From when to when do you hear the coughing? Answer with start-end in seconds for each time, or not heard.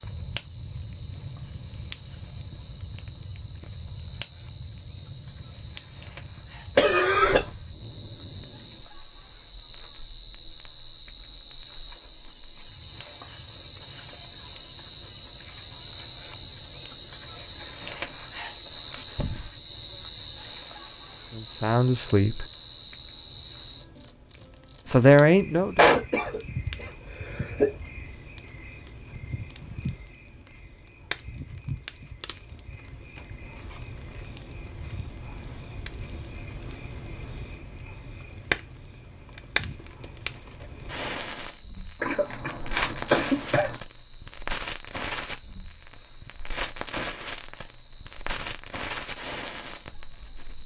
6.8-7.5, 25.8-27.8, 42.0-43.8.